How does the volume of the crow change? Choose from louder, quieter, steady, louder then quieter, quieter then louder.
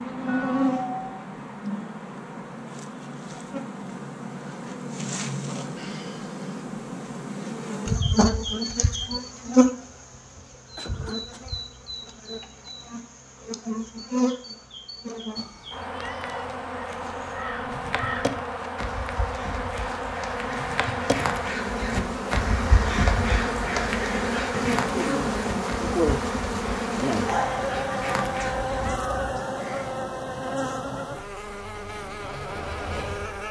louder then quieter.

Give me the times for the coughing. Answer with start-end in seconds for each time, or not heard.
10.8-11.4.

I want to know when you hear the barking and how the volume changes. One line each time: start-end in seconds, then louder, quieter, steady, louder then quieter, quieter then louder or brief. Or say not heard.
not heard.